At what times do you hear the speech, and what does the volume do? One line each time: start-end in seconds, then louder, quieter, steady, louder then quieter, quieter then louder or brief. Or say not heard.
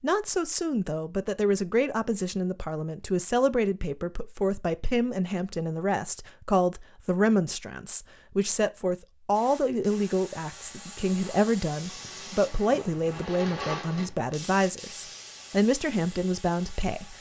0.0-17.1 steady.